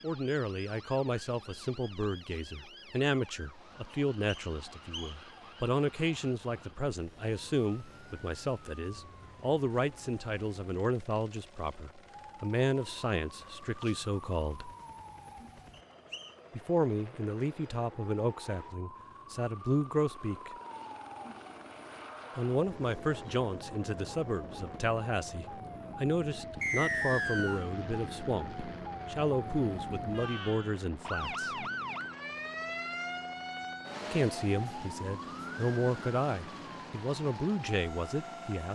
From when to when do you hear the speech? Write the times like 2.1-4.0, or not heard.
0.0-14.7, 16.5-20.6, 22.4-31.6, 34.1-38.7.